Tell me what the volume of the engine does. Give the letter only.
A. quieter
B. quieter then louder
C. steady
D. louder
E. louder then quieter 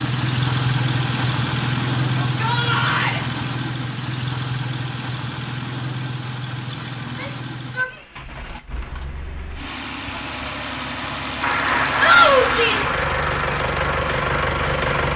B.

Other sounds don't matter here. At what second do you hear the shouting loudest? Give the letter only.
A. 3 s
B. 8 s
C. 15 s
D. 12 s
D.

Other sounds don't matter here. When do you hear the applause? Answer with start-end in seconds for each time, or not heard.
11.4-15.1.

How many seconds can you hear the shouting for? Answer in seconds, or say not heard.
3 s.